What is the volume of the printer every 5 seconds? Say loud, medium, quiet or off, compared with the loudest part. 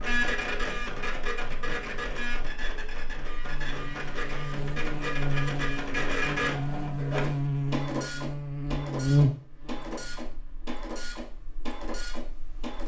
loud, loud, medium.